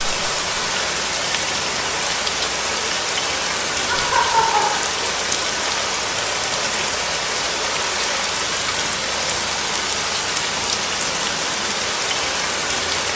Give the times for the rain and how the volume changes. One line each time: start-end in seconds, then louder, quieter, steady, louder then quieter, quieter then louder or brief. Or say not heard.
0.0-13.1 steady.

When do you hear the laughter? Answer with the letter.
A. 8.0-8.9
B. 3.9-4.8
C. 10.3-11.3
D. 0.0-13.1
B.